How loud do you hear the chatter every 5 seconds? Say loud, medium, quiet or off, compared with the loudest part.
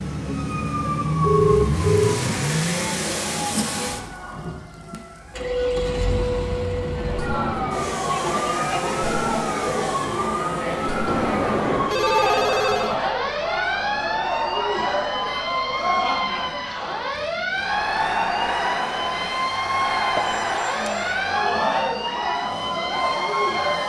off, loud, loud, loud, loud.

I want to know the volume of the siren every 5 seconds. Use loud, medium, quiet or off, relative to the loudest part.
medium, loud, loud, loud, loud.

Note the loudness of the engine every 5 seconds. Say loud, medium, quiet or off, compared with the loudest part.
loud, medium, quiet, quiet, quiet.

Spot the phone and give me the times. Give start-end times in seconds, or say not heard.
1.2-2.2, 11.1-13.0, 20.1-21.1.